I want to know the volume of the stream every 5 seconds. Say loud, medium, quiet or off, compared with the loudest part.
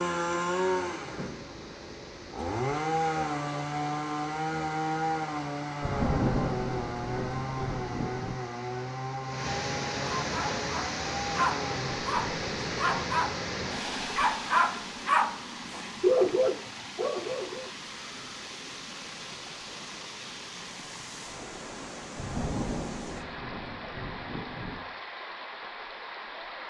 quiet, medium, loud, medium, medium, medium.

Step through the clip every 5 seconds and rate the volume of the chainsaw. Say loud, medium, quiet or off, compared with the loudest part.
loud, loud, medium, off, off, off.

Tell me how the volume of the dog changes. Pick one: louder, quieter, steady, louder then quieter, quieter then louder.
louder then quieter.